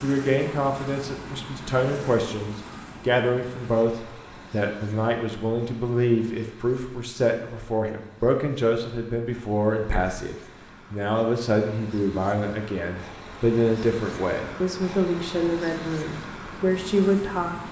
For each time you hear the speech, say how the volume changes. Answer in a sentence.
You can hear the speech from 0.0 to 17.6 s, at a steady volume.